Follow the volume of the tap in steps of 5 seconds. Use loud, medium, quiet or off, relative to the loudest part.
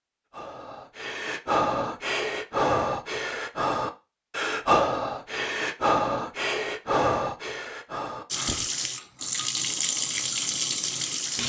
off, loud, loud.